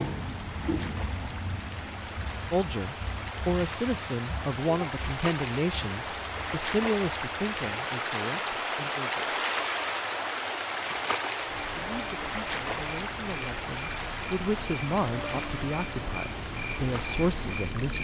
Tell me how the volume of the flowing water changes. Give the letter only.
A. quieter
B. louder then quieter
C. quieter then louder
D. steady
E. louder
B.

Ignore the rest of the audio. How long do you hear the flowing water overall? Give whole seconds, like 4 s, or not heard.
18 s.